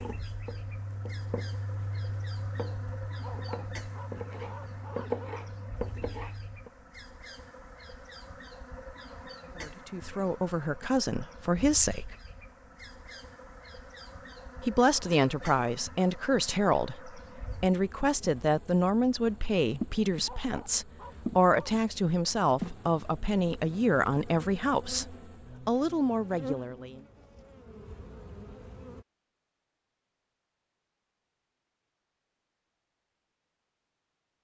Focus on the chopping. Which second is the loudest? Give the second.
5 s.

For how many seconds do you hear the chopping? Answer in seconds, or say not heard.
7 s.